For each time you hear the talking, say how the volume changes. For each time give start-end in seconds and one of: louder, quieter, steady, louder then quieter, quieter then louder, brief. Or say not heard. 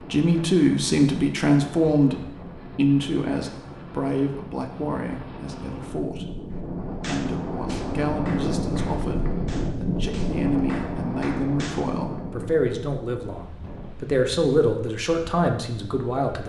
0.0-6.2 quieter
7.0-16.4 louder.